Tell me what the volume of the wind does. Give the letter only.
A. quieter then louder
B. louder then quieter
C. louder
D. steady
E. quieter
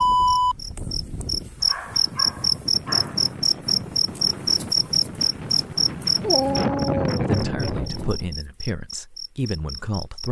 C.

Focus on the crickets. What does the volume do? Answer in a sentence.
The volume of the crickets goes down.